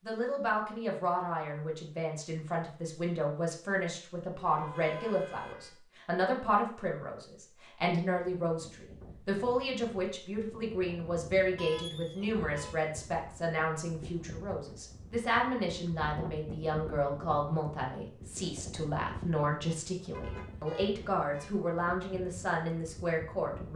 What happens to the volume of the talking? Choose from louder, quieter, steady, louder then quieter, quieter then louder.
steady.